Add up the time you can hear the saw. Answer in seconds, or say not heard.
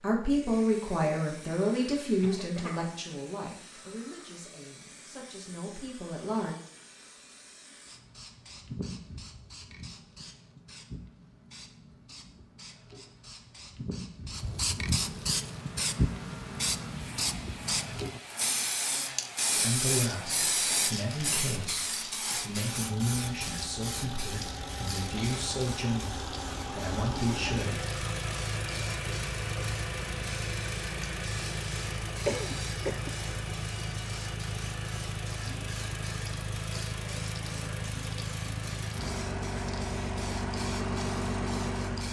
not heard.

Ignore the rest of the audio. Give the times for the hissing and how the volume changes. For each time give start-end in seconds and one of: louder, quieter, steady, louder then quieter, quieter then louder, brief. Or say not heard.
0.0-42.0 louder then quieter.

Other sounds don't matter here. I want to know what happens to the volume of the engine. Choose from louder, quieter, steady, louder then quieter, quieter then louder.
louder.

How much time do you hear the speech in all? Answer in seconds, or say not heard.
15 s.